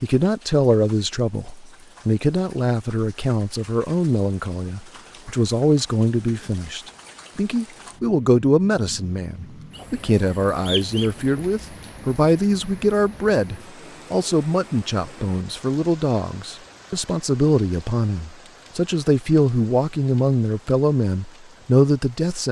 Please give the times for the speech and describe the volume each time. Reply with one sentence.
The speech can be heard from 0.0 to 22.4 s, at a steady volume.